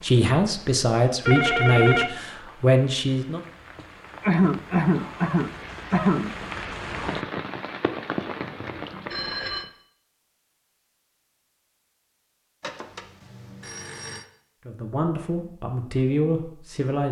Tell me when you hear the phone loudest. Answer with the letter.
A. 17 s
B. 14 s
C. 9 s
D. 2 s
D.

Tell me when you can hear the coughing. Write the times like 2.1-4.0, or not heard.
4.2-6.3.